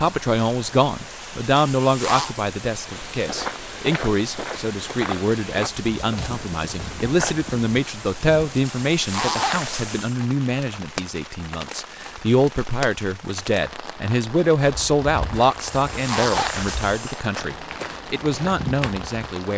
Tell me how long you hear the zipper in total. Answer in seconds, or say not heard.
4 s.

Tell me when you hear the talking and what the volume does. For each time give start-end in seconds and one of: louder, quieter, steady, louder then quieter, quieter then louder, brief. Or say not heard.
0.0-19.5 steady.